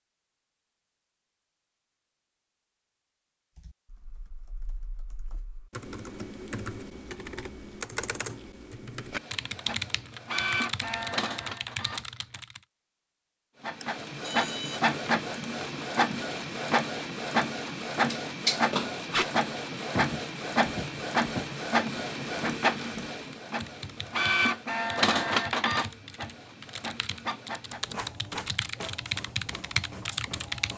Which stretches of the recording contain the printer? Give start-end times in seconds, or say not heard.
9.1-12.4, 13.6-30.7.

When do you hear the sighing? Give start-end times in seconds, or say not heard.
not heard.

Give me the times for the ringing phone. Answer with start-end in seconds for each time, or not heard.
13.8-14.8.